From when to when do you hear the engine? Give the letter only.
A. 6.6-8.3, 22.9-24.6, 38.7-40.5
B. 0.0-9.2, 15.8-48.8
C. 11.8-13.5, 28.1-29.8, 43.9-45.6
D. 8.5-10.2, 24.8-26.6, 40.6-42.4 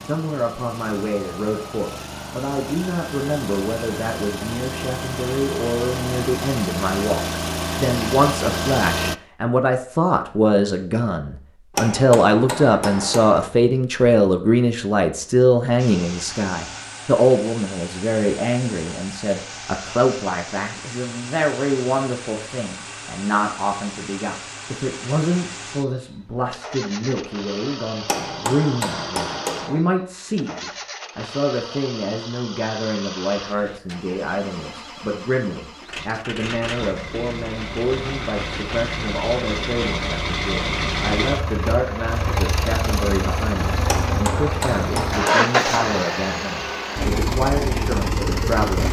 B.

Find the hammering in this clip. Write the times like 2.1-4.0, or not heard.
11.8-13.5, 28.1-29.8, 43.9-45.6.